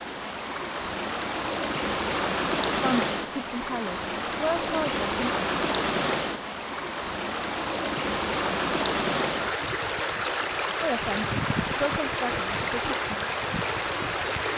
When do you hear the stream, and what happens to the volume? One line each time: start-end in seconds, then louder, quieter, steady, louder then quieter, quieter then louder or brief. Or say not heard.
0.0-14.5 steady.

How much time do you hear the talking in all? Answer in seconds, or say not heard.
5 s.